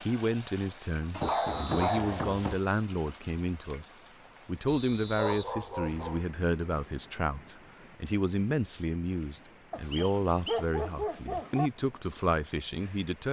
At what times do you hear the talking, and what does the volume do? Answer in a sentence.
The talking can be heard from 0.0 to 13.2 s, at a steady volume.